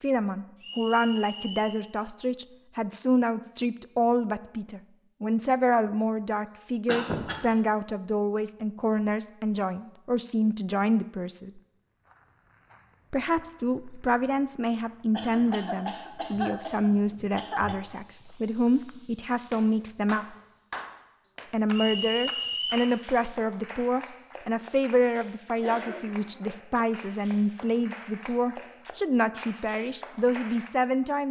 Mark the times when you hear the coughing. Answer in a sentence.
You can hear the coughing from 6.5 to 7.4 s, from 15.1 to 17.8 s and from 25.6 to 26.5 s.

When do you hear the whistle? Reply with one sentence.
The whistle can be heard from 0.6 to 1.9 s and from 21.7 to 22.9 s.